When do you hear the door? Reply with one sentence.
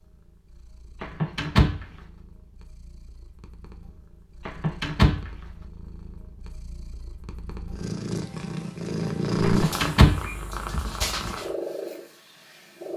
The door can be heard from 1.0 to 1.9 s, from 4.5 to 5.3 s and from 9.4 to 10.8 s.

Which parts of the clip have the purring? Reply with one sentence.
You can hear the purring from 0.0 to 12.9 s.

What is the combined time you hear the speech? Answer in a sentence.
The speech can't be heard in this clip.